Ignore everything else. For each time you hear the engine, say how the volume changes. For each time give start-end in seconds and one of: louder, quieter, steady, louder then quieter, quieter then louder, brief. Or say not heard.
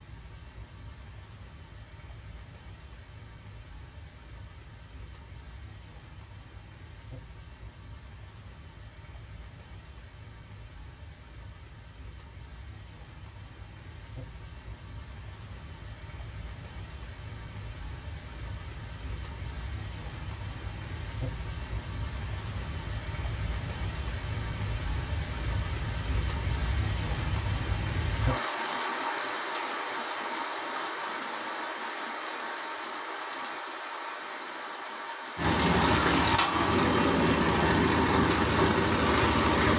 35.4-39.7 steady.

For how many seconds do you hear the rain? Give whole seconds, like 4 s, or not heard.
40 s.